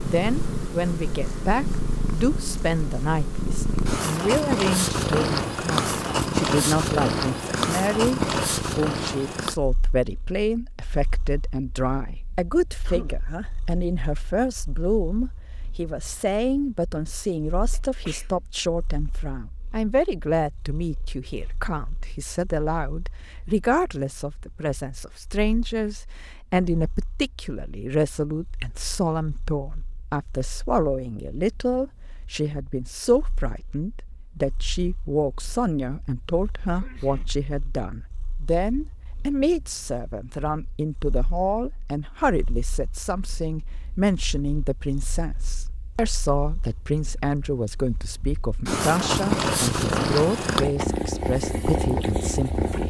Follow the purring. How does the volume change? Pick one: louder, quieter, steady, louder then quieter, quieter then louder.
quieter then louder.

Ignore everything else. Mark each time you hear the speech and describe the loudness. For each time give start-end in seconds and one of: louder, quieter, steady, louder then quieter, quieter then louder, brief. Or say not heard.
0.0-52.8 steady.